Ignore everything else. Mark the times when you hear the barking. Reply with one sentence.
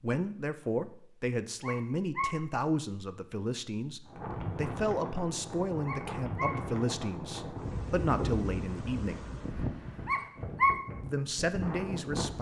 You can hear the barking from 1.6 to 2.3 s, from 5.8 to 6.5 s and from 10.1 to 10.8 s.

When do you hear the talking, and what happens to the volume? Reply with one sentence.
The talking can be heard from 0.0 to 9.2 s, at a steady volume; and briefly from 11.0 to 12.3 s.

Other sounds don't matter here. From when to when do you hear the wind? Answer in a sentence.
The wind can be heard from 4.0 to 12.3 s.